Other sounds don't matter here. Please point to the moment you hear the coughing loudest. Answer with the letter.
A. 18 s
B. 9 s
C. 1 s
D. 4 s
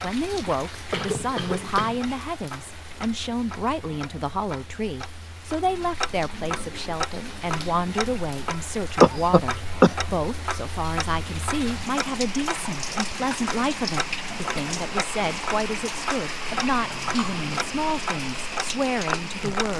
B.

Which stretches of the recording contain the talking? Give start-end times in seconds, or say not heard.
0.0-19.7.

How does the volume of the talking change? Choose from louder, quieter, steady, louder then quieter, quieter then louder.
steady.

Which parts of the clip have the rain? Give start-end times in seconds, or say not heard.
0.0-19.7.